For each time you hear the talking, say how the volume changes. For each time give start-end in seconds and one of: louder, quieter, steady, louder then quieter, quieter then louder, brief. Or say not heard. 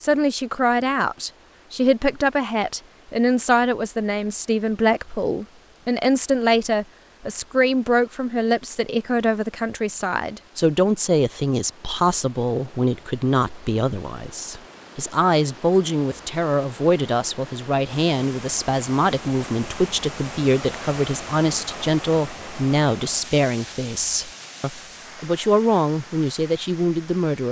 0.0-27.4 steady.